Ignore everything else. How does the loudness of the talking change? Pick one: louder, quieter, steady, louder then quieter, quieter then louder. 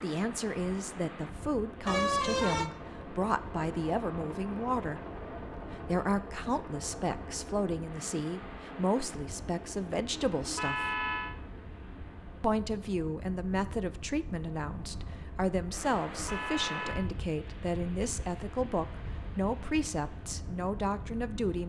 steady.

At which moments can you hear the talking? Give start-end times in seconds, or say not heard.
0.0-5.0, 5.8-11.0, 12.4-21.6.